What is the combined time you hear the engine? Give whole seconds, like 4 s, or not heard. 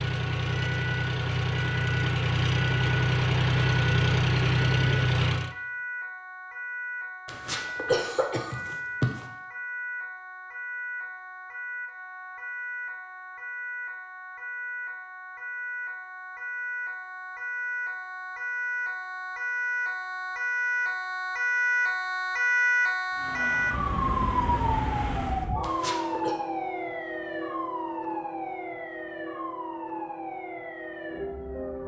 8 s.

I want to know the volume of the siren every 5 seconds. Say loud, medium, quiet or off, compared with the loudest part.
medium, medium, medium, medium, loud, medium, medium.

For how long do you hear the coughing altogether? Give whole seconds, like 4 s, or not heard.
3 s.